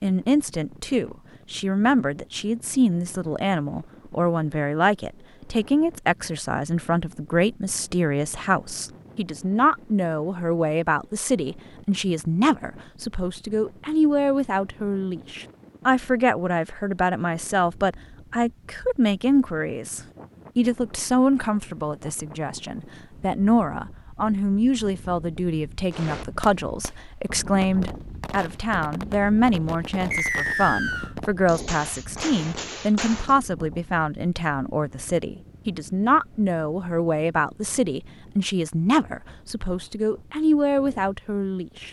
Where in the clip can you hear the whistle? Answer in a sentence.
You can hear the whistle from 30.1 to 31.1 s.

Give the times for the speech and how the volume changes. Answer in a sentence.
You can hear the speech from 0.0 to 41.8 s, at a steady volume.